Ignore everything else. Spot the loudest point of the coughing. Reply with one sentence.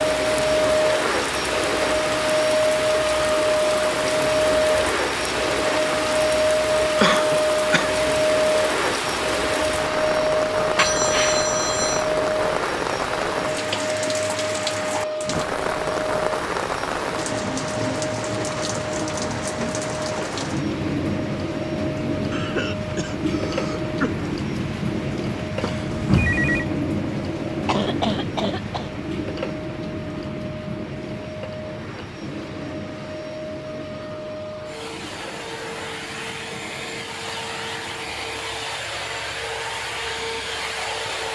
The loudest moment of the coughing is at 7 seconds.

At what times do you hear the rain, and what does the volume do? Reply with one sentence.
The rain can be heard from 0.0 to 41.3 s, getting quieter.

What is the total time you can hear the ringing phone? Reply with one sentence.
You can hear the ringing phone for 2 seconds altogether.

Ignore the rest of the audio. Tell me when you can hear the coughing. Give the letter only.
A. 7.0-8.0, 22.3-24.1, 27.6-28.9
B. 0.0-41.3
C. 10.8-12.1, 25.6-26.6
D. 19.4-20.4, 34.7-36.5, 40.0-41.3
A.